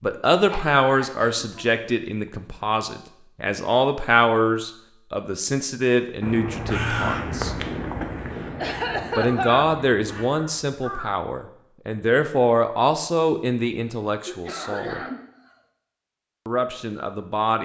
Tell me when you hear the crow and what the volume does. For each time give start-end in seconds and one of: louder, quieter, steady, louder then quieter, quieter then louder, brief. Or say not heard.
6.2-11.2 quieter.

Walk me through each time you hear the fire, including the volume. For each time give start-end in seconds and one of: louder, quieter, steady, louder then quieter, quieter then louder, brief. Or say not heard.
not heard.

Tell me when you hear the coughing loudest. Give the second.
9 s.